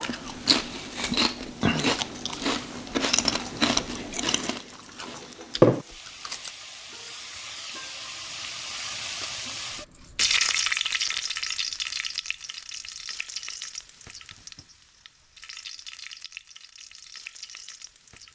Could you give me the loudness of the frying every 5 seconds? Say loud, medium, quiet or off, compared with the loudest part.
quiet, medium, loud, quiet.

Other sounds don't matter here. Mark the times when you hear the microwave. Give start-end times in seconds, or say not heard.
not heard.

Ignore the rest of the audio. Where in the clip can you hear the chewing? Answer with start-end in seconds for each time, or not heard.
0.0-6.5.